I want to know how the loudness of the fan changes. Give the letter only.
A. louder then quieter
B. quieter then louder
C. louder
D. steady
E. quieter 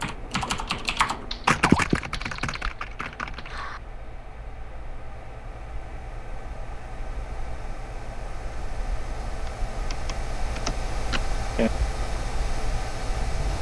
C.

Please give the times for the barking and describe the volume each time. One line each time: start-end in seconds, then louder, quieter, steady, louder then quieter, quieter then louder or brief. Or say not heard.
not heard.